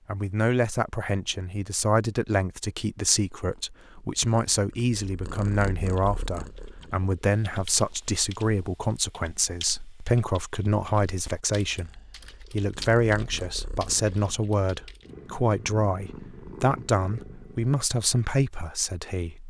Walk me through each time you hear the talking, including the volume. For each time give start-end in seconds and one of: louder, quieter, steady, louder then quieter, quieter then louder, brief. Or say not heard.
0.1-19.4 steady.